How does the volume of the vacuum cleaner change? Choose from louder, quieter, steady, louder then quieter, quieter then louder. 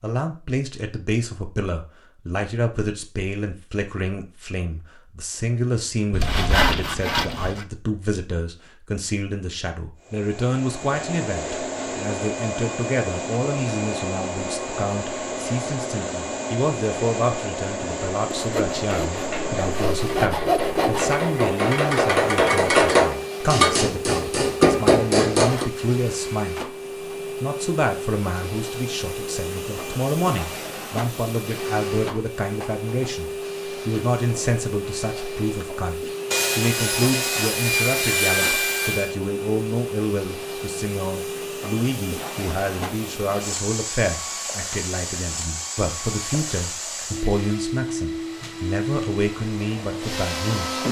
steady.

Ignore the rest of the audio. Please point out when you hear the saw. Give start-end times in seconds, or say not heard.
6.1-7.7, 18.3-21.1, 36.3-39.1.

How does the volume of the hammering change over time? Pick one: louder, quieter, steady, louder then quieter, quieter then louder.
louder.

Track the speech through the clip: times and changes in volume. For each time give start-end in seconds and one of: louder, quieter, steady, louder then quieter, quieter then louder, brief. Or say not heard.
0.0-26.8 steady
27.4-50.8 steady.